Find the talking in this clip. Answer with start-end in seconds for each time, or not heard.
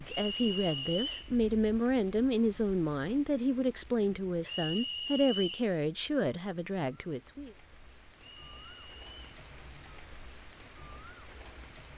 0.1-7.5.